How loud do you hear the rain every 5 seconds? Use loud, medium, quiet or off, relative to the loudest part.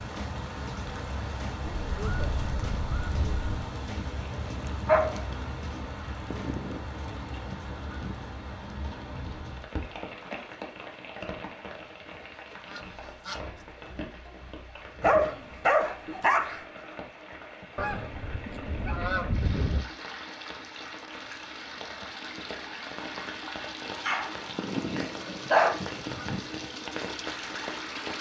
loud, loud, medium, medium, loud, loud.